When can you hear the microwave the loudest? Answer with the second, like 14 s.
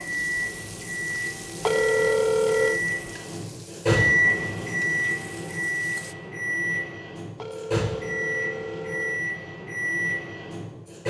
4 s.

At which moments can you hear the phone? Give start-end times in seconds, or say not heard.
1.6-2.8, 7.3-9.2.